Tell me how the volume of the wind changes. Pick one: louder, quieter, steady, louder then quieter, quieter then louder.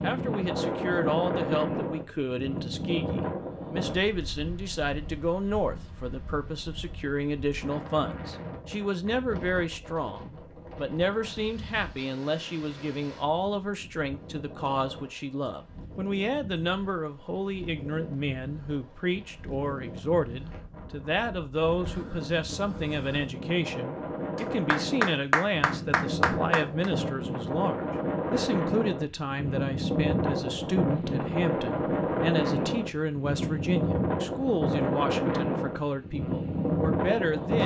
quieter then louder.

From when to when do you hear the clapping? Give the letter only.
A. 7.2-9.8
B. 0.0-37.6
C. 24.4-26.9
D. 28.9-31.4
C.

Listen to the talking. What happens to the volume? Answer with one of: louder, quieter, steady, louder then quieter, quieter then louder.
steady.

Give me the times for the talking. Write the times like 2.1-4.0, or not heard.
0.0-37.6.